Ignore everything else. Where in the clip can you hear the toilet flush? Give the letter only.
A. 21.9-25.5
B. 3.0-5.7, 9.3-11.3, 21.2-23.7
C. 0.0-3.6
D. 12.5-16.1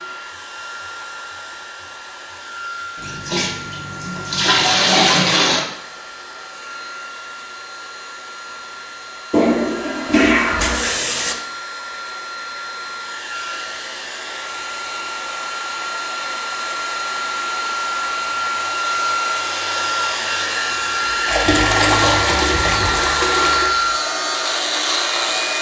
B.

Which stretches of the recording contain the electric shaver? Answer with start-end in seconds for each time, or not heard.
21.9-25.5.